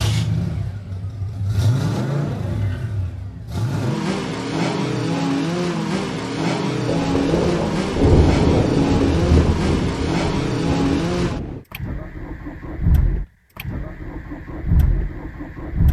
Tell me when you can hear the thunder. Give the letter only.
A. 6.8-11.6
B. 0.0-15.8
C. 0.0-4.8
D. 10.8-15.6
A.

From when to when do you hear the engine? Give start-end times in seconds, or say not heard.
0.0-15.8.